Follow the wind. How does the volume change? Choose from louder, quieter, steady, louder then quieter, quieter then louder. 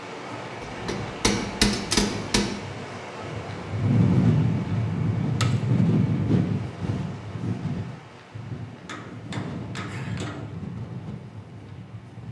louder then quieter.